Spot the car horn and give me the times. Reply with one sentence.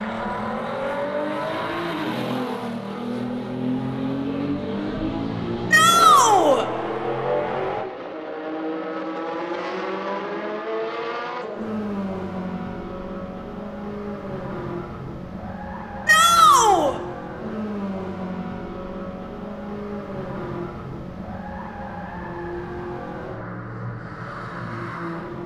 The car horn can't be heard in this clip.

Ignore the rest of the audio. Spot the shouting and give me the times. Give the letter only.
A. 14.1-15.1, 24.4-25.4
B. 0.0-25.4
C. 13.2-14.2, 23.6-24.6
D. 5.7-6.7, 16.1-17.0
D.